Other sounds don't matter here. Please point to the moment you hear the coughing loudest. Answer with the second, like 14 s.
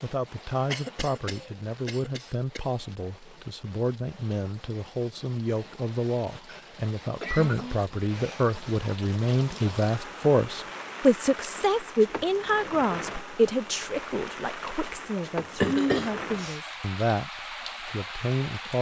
16 s.